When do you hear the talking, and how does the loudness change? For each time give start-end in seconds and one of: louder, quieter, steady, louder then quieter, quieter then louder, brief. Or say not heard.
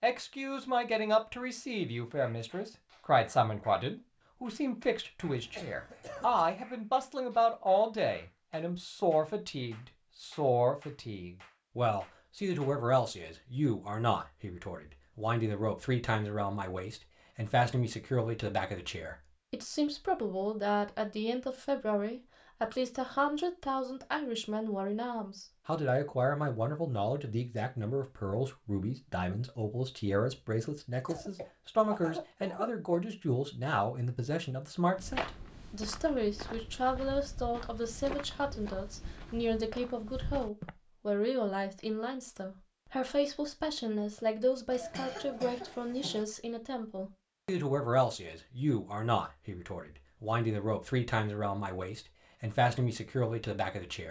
0.0-54.0 steady.